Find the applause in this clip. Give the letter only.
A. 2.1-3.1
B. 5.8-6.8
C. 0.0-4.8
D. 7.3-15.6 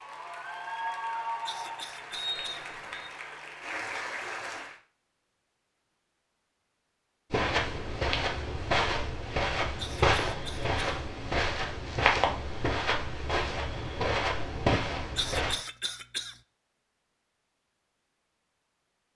C.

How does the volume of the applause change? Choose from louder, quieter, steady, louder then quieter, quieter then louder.
quieter then louder.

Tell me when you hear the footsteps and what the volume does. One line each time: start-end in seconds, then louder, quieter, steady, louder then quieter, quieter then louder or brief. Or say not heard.
7.3-15.6 steady.